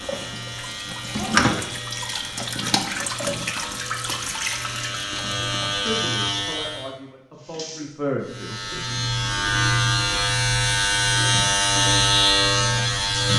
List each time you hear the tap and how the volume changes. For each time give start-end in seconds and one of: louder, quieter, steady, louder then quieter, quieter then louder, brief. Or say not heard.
0.0-11.4 quieter.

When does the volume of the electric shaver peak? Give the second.
12 s.